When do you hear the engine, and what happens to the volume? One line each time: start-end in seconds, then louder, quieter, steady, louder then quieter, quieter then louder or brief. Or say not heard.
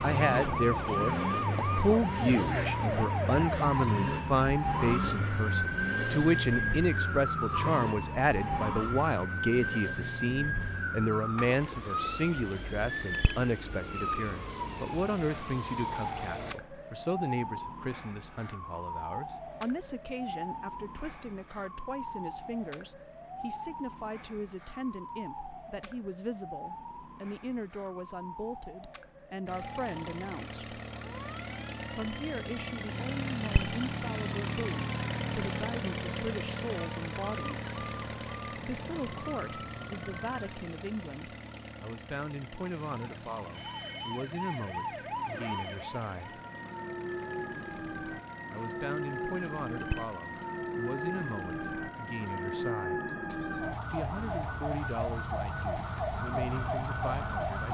0.0-16.6 quieter
29.4-57.6 quieter.